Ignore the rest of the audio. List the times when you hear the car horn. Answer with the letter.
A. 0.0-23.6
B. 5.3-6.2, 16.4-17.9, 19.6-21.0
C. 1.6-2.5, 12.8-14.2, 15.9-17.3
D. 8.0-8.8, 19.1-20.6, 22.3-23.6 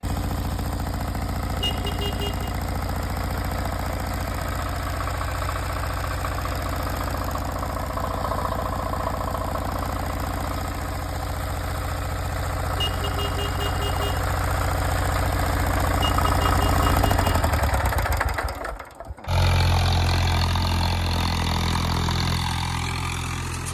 C.